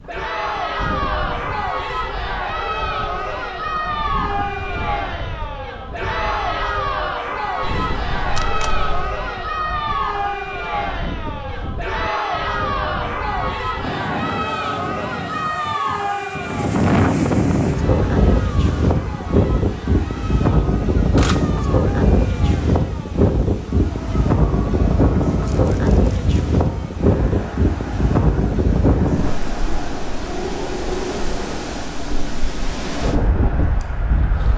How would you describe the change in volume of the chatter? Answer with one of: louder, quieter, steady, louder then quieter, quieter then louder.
quieter.